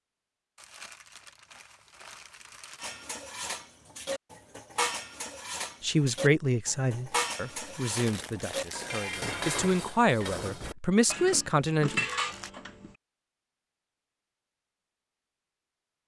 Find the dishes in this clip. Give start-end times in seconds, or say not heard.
2.8-12.9.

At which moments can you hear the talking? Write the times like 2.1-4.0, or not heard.
5.8-12.0.